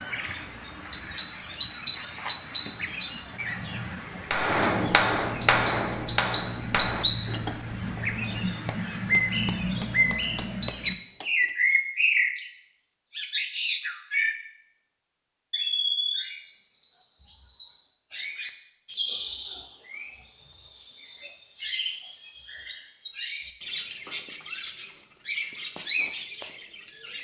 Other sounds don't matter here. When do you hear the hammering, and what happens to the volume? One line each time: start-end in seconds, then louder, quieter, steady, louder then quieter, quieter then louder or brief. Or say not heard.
4.3-11.6 quieter.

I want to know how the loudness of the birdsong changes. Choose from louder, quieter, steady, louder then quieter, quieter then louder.
quieter.